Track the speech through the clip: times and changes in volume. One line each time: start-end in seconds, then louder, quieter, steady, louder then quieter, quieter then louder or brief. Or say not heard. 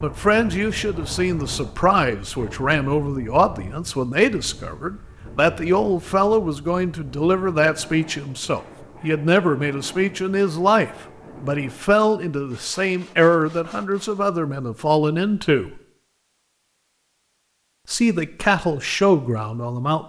0.0-15.8 steady
17.9-20.0 brief.